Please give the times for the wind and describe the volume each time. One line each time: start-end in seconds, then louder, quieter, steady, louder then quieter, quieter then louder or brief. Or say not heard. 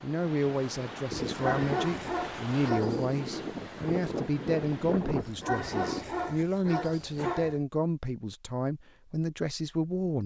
0.0-6.2 steady.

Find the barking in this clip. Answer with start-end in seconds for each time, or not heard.
1.2-3.2, 5.2-7.6.